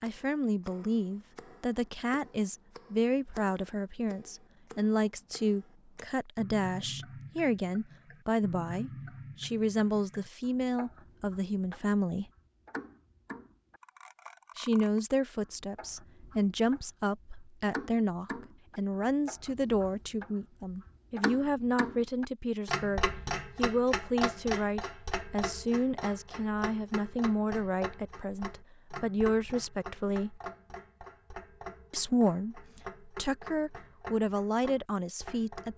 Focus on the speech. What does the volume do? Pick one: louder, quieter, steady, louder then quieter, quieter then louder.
steady.